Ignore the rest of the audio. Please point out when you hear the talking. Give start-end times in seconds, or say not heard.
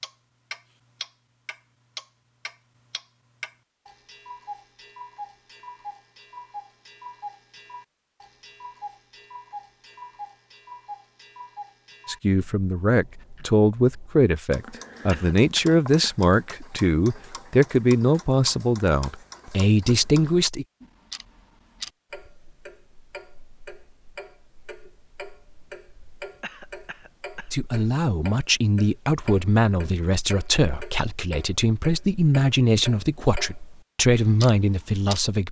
12.1-20.6, 27.5-35.4.